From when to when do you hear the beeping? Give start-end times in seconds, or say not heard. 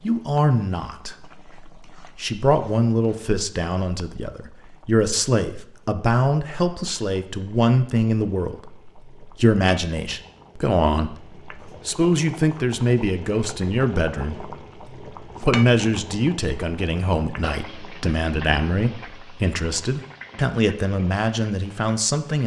not heard.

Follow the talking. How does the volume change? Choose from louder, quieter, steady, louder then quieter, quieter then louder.
steady.